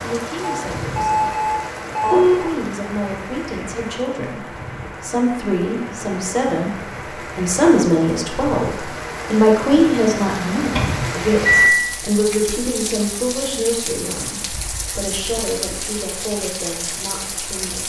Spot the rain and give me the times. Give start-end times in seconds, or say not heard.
0.0-17.8.